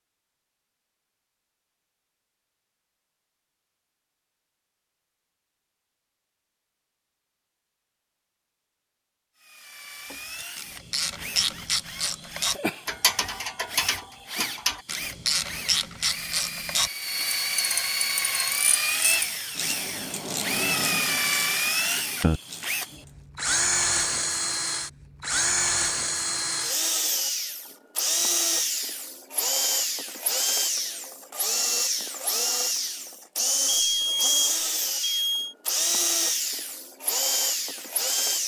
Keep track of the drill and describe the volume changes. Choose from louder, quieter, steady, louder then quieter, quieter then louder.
louder.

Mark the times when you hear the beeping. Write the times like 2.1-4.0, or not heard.
33.6-35.5.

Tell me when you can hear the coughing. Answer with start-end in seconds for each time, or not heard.
not heard.